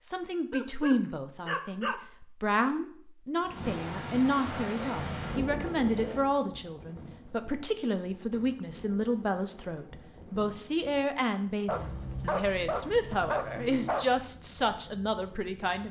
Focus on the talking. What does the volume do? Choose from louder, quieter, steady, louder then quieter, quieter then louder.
steady.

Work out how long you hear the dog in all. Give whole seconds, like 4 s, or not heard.
4 s.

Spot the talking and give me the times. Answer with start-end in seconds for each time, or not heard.
0.0-15.8.